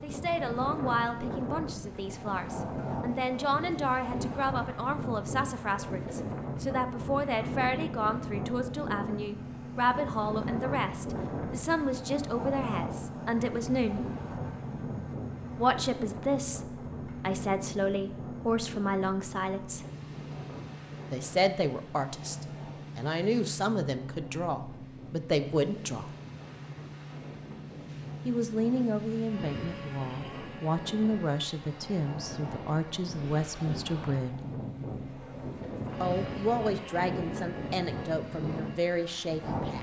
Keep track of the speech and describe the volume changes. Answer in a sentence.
The loudness of the speech stays about the same.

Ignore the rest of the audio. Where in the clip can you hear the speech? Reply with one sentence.
The speech can be heard from 0.0 to 14.1 s, from 15.6 to 19.9 s, from 21.1 to 26.1 s, from 28.2 to 34.4 s and from 36.0 to 39.7 s.